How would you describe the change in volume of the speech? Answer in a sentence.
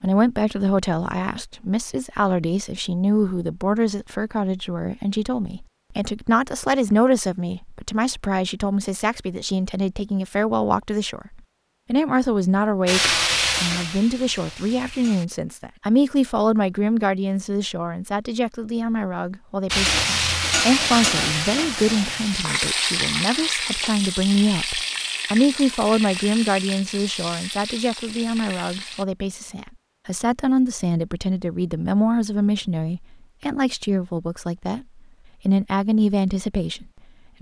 The loudness of the speech stays about the same.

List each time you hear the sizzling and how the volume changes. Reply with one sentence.
The sizzling can be heard briefly from 12.8 to 15.2 s; and from 19.7 to 29.1 s, getting quieter.